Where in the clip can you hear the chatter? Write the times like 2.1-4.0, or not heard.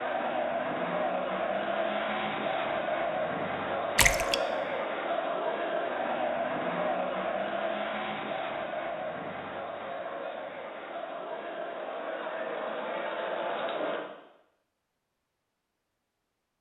0.0-14.0.